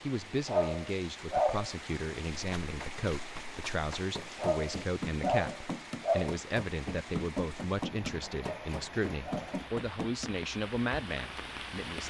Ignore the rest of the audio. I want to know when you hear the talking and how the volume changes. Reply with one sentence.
You can hear the talking from 0.0 to 12.0 s, at a steady volume.